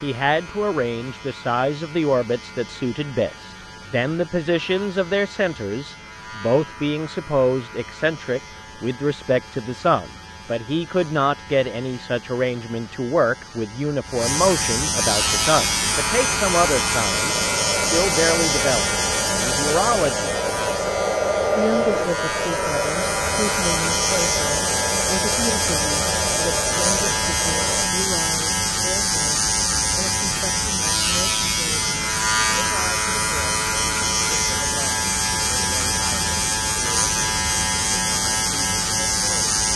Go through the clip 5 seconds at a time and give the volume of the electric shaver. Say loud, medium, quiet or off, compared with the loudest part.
quiet, quiet, medium, loud, loud, loud, loud, loud.